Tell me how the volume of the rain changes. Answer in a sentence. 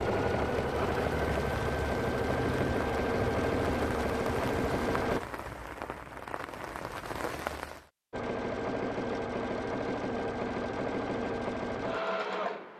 The loudness of the rain stays about the same.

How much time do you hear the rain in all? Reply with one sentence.
The rain can be heard for 8 seconds in total.